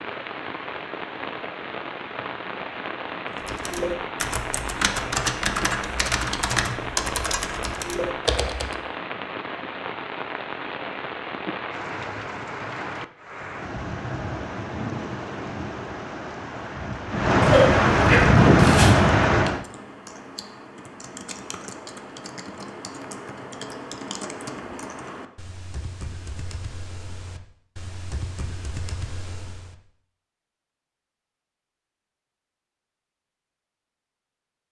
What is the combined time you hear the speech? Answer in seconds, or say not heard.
not heard.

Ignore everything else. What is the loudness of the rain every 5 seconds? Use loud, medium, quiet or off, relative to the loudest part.
quiet, quiet, quiet, loud, off, off, off.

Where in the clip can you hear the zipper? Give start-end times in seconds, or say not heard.
17.4-18.9.